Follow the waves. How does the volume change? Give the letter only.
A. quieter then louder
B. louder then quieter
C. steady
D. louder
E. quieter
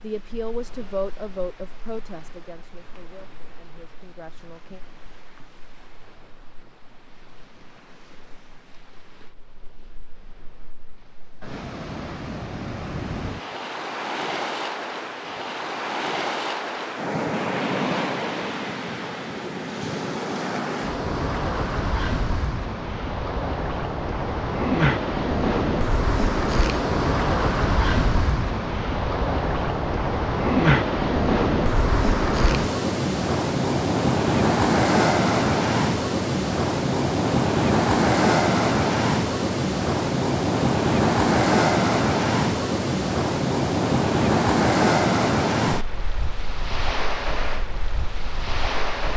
D.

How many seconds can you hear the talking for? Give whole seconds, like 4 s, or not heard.
5 s.